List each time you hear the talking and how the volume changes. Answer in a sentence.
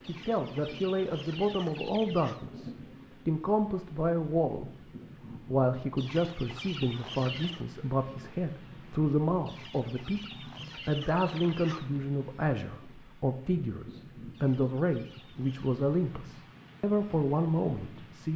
You can hear the talking from 0.1 to 18.3 s, at a steady volume.